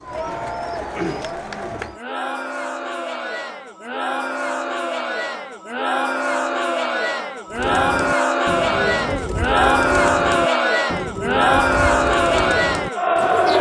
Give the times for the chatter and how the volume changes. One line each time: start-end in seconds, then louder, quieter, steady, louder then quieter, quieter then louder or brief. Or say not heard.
0.0-13.5 louder.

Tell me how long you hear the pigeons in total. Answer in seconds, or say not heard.
8 s.